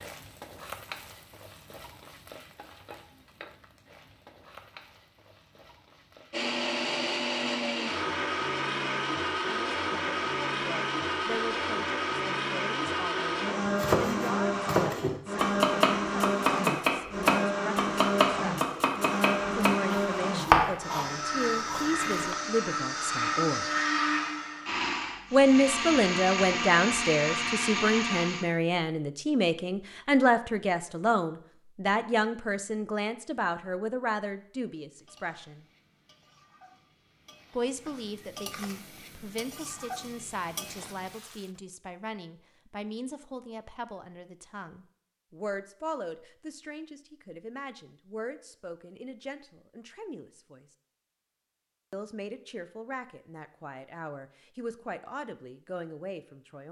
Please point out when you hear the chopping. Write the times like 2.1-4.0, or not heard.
13.7-22.4.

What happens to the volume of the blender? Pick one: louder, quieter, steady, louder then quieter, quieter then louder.
steady.